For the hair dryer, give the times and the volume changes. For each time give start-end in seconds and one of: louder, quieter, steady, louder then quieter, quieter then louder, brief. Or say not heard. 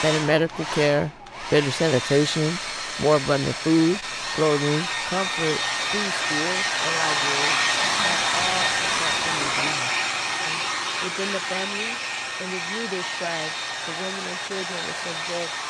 0.0-15.6 louder then quieter.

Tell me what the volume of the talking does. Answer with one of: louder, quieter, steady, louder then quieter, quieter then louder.
quieter.